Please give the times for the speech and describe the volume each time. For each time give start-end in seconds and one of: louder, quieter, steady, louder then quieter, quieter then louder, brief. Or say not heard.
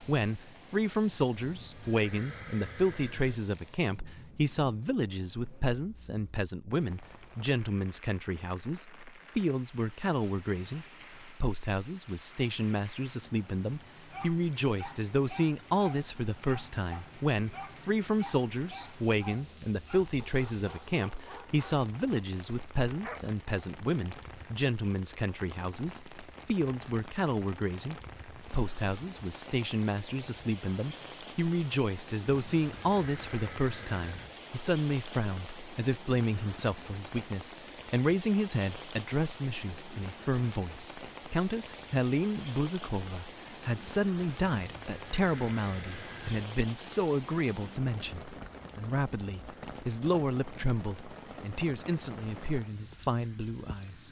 0.0-54.0 steady.